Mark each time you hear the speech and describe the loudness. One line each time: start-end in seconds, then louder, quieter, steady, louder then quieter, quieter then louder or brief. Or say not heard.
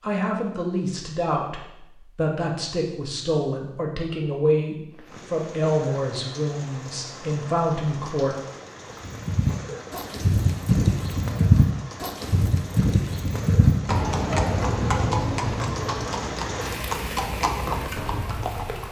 0.0-8.3 steady.